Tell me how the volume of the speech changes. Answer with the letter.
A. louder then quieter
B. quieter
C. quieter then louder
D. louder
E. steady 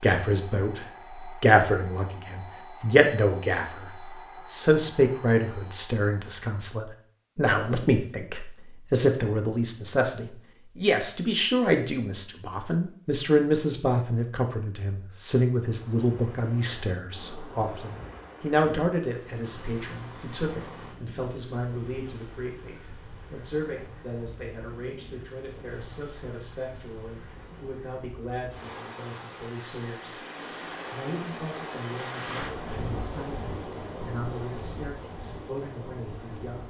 B.